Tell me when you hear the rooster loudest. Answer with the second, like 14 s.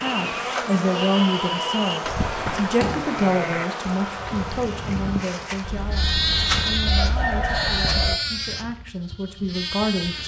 7 s.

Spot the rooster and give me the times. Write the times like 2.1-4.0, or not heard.
5.6-8.2.